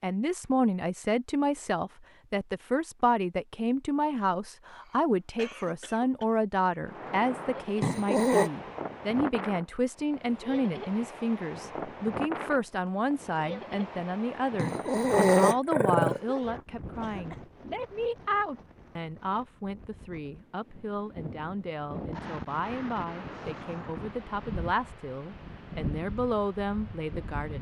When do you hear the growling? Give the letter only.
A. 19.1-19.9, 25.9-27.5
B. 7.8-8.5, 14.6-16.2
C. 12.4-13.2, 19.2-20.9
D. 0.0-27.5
B.